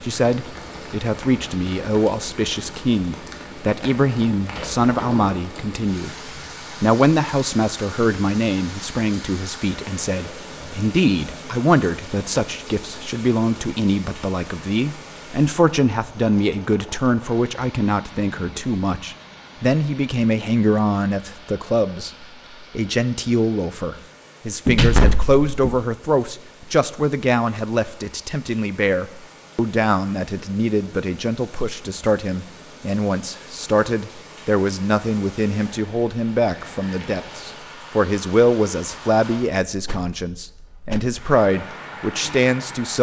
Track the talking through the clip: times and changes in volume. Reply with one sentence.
You can hear the talking from 0.0 to 42.9 s, at a steady volume.